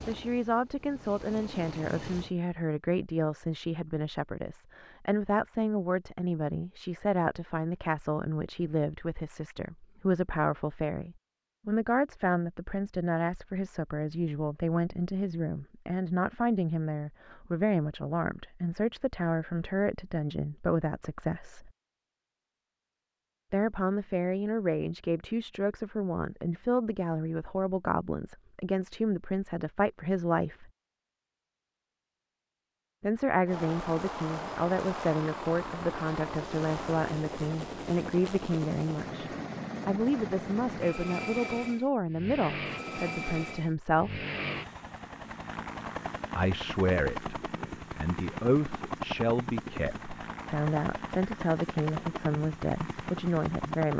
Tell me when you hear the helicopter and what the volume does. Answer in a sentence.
You can hear the helicopter briefly from 0.0 to 2.4 s; and from 33.5 to 53.9 s, at a steady volume.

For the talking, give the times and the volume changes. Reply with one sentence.
The talking can be heard from 0.0 to 21.7 s, at a steady volume; from 23.5 to 30.7 s, at a steady volume; from 33.0 to 44.2 s, at a steady volume; and from 46.4 to 53.9 s, at a steady volume.